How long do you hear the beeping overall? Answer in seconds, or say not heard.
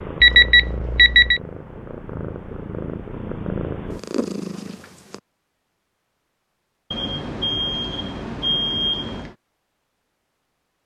4 s.